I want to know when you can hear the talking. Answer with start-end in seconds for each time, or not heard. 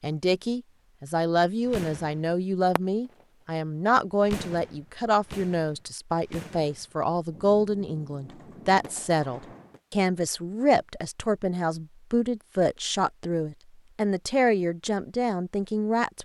0.0-16.1.